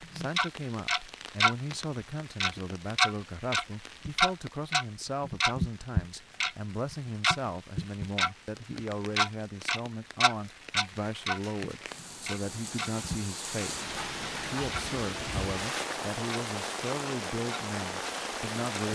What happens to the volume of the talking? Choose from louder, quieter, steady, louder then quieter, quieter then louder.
steady.